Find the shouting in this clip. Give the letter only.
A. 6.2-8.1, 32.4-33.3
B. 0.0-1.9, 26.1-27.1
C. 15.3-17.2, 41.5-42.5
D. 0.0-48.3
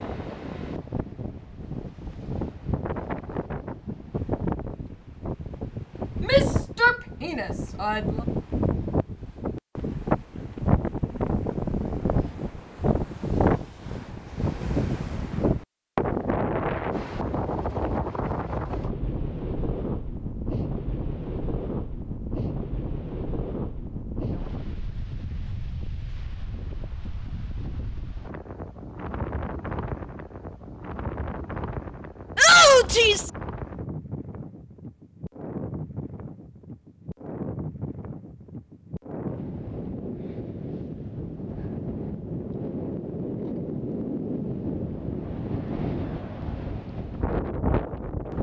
A.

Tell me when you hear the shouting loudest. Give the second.
33 s.